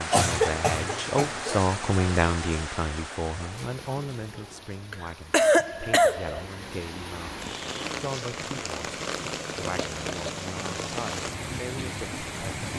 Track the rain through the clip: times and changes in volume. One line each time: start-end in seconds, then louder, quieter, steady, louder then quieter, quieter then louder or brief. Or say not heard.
0.0-12.7 quieter then louder.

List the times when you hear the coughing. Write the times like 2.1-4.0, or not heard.
0.1-1.6, 4.9-6.5, 9.8-10.4.